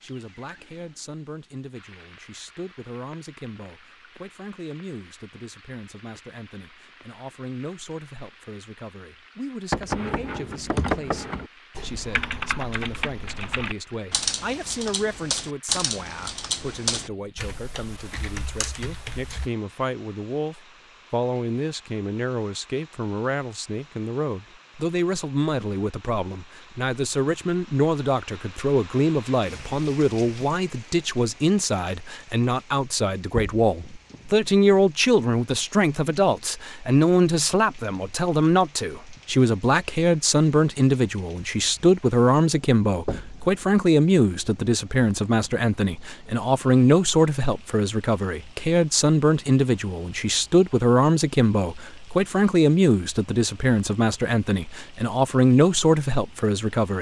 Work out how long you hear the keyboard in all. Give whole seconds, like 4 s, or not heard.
10 s.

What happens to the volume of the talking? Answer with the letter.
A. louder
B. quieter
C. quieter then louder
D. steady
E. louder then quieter
A.